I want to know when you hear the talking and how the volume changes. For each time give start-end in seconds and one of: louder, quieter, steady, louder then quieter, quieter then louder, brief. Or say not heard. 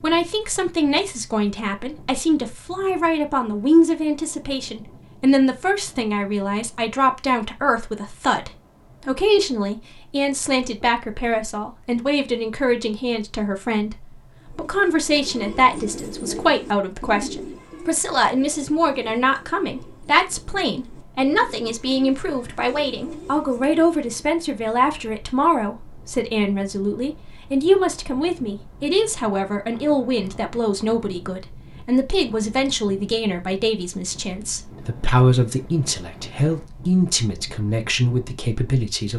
0.0-39.1 steady.